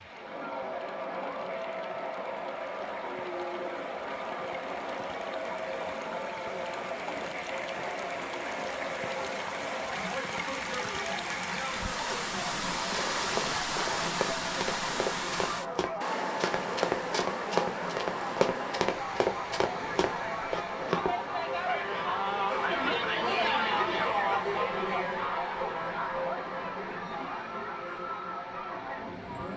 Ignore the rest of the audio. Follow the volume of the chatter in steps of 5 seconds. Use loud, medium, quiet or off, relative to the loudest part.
medium, medium, medium, medium, loud, medium.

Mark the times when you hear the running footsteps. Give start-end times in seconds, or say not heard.
12.9-21.1.